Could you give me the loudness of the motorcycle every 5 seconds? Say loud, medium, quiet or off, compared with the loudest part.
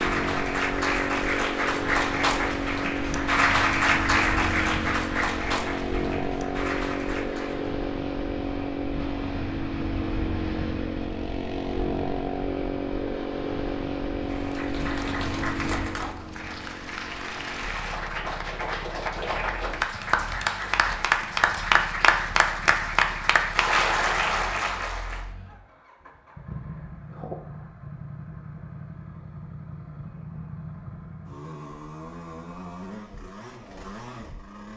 loud, loud, loud, medium, quiet, medium, medium.